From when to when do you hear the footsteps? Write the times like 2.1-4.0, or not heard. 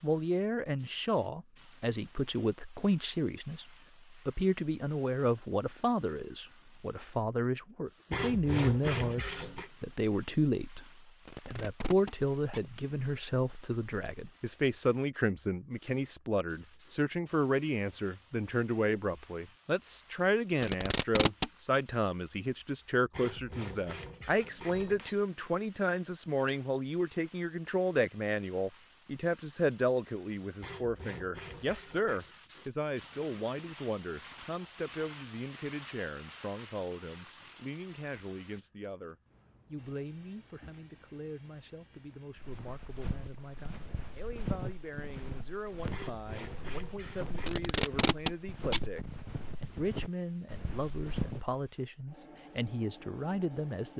42.4-51.5.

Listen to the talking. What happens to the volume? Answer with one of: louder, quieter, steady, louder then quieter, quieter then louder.
quieter.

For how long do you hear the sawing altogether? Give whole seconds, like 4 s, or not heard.
7 s.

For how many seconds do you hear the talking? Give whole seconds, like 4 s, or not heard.
54 s.